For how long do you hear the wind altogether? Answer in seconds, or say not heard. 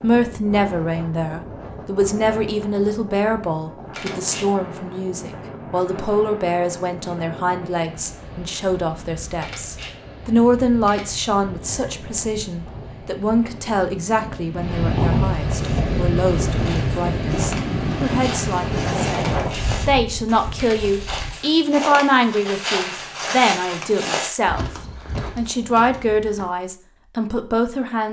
21 s.